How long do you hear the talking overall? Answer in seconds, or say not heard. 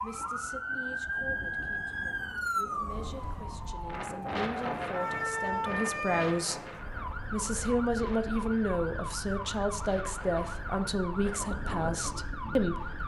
13 s.